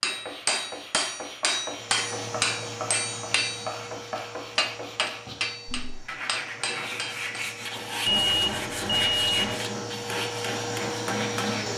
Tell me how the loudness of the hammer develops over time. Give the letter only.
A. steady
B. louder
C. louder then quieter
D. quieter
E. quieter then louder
D.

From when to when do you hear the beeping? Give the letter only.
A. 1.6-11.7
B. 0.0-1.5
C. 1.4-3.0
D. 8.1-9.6
D.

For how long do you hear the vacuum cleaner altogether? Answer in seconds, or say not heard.
10 s.